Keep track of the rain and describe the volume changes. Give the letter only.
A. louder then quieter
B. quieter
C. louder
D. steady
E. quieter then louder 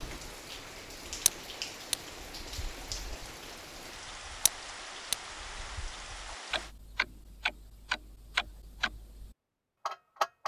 D.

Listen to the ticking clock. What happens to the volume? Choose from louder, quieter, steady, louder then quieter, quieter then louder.
quieter then louder.